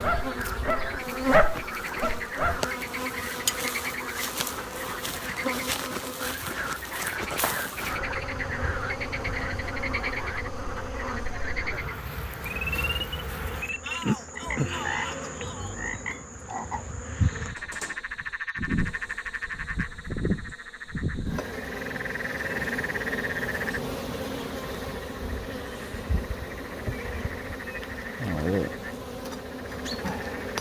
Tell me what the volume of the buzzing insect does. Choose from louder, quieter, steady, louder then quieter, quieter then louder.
steady.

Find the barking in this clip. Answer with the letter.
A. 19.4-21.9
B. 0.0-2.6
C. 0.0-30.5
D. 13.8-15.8
B.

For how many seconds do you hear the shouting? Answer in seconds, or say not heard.
2 s.